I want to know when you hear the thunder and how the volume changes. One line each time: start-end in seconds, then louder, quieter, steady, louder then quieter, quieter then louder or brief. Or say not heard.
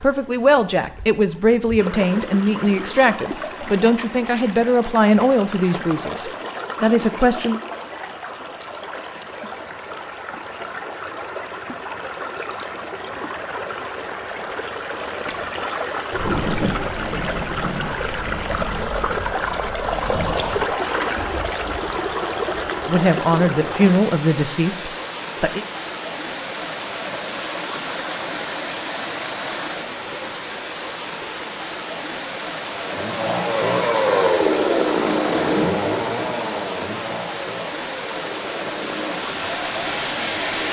16.1-20.8 quieter then louder.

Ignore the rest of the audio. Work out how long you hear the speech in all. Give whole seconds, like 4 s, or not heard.
10 s.